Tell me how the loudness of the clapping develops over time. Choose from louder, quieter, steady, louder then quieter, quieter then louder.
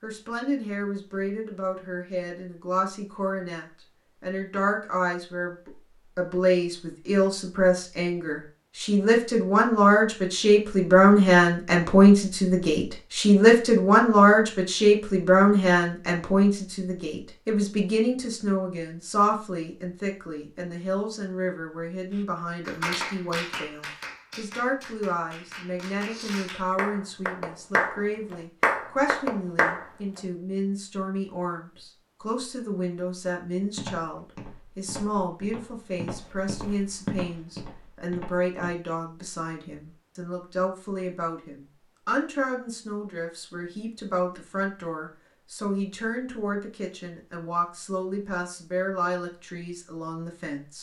quieter then louder.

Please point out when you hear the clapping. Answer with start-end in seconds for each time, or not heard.
22.6-30.2.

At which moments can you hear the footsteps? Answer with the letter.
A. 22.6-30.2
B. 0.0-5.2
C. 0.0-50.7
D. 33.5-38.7
D.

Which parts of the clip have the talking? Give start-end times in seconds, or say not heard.
0.0-50.7.